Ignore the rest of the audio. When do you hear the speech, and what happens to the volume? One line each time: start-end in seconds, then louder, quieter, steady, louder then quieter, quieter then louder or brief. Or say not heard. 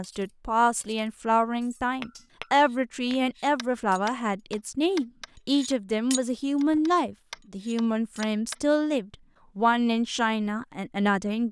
0.0-11.4 steady.